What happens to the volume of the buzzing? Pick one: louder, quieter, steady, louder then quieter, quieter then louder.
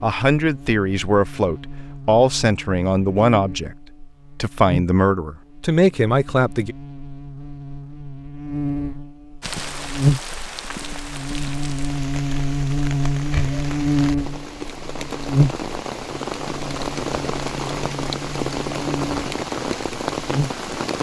louder then quieter.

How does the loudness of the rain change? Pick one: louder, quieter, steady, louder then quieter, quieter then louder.
louder.